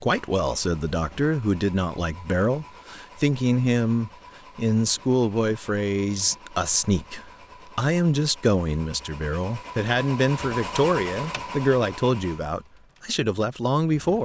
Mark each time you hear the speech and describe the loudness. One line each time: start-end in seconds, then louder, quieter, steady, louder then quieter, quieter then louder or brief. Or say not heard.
0.0-14.2 steady.